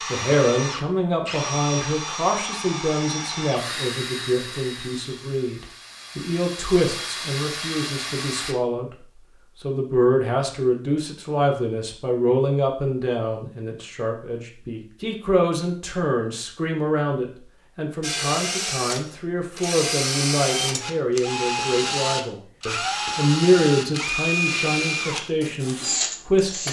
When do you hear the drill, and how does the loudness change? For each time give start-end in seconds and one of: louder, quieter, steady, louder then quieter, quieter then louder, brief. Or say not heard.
0.0-8.6 quieter then louder
18.0-26.6 steady.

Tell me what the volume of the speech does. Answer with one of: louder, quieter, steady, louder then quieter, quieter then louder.
steady.